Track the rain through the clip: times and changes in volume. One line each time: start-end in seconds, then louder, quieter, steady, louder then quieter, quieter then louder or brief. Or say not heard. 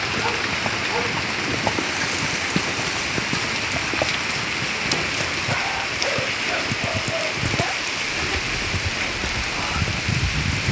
0.0-10.6 steady.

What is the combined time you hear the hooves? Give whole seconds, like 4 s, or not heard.
8 s.